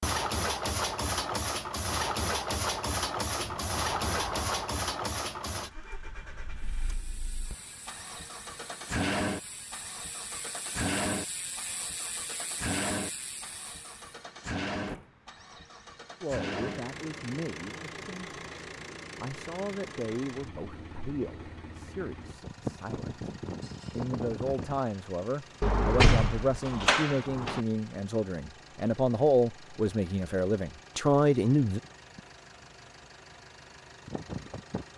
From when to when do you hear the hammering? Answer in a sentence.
You can't hear the hammering here.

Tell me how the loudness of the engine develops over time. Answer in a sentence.
The volume of the engine goes down.